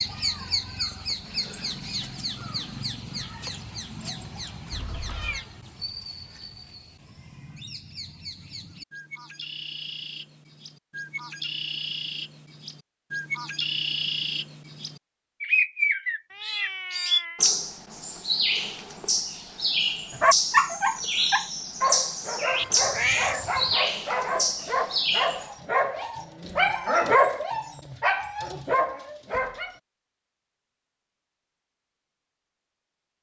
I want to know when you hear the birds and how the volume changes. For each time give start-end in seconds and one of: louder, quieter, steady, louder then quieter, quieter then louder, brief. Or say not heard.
0.0-25.5 quieter then louder.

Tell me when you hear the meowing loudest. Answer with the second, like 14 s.
23 s.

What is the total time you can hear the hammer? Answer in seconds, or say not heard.
not heard.